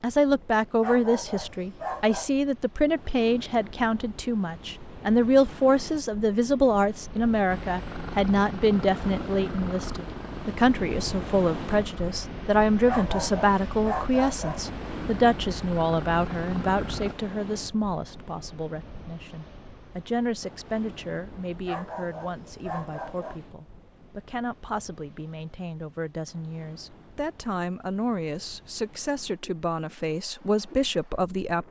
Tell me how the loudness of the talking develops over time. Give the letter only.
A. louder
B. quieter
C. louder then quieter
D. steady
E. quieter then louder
B.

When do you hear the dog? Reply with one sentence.
You can hear the dog from 0.8 to 2.3 s, from 12.8 to 14.7 s and from 21.6 to 23.4 s.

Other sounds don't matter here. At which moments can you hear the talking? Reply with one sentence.
You can hear the talking from 0.0 to 31.6 s.